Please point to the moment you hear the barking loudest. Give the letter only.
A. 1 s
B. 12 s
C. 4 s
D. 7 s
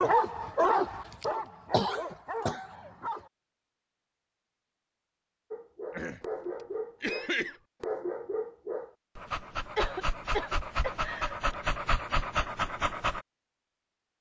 A.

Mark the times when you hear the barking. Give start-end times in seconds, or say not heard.
0.0-3.3, 5.5-13.2.